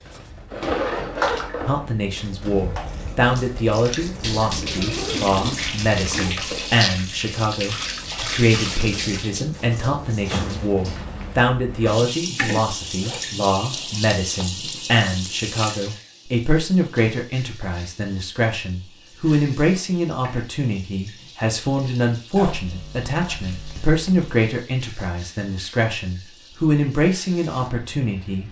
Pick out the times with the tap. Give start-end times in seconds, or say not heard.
0.0-28.4.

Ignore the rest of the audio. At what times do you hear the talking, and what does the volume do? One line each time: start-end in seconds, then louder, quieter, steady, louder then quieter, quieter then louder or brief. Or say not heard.
1.6-28.4 steady.